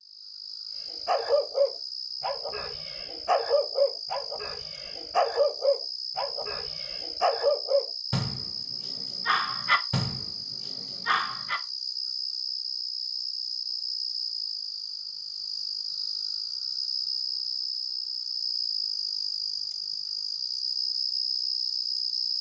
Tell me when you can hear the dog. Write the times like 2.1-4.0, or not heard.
0.9-11.6.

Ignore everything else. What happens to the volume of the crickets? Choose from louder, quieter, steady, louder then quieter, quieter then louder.
louder.